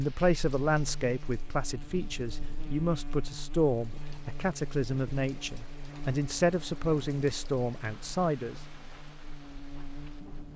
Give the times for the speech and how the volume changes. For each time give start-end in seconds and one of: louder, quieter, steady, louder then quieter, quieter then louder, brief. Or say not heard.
0.0-8.6 steady.